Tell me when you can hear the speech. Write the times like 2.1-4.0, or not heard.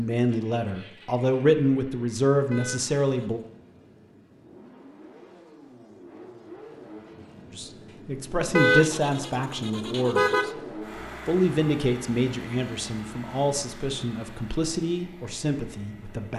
0.0-3.4, 7.5-10.5, 11.2-16.3.